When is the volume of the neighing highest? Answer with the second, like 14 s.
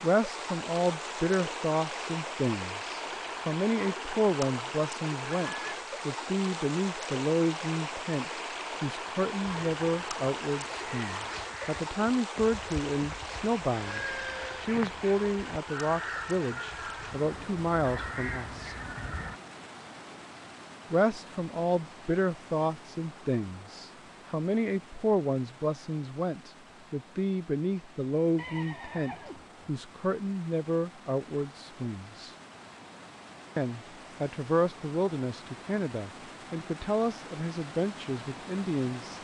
14 s.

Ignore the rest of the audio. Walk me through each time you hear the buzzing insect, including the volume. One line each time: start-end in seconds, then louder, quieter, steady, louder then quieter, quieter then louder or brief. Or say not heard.
not heard.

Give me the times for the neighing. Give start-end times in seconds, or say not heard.
5.2-5.8, 13.7-14.7, 28.4-29.5.